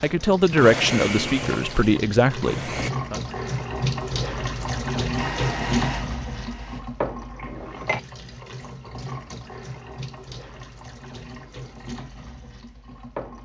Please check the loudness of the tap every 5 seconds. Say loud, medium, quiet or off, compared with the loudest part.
loud, loud, medium.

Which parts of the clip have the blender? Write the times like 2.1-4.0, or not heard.
0.0-2.9, 5.2-6.8.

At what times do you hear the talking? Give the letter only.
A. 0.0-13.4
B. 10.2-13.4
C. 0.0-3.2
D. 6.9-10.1
C.